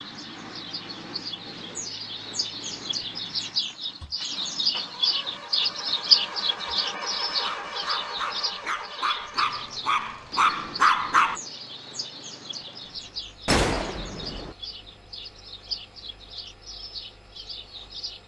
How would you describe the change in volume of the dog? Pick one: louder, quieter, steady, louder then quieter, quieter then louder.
louder.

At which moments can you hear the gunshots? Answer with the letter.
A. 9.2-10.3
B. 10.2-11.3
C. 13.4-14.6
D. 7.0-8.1
C.